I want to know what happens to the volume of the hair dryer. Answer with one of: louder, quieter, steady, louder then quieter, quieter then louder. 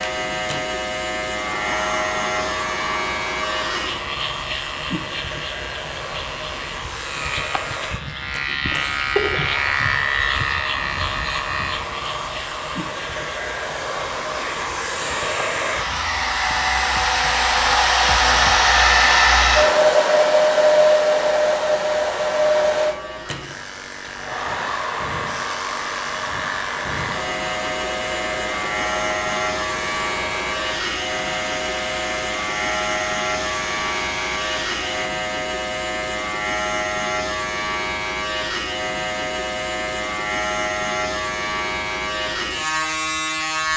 louder then quieter.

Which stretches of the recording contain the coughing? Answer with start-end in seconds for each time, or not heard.
8.7-9.4.